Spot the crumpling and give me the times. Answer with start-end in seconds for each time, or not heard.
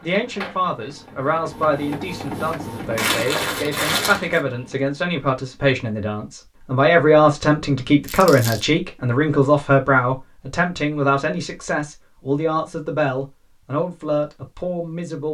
3.0-4.4, 8.1-8.7.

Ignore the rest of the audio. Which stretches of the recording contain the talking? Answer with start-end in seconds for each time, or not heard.
0.0-15.2.